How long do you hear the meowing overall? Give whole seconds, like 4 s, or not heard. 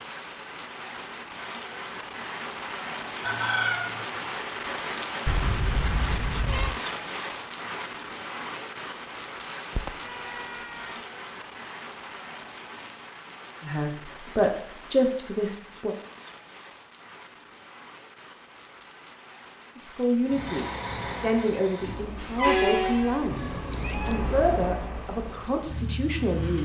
4 s.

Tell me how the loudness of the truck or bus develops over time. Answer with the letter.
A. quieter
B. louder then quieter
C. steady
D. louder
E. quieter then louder
B.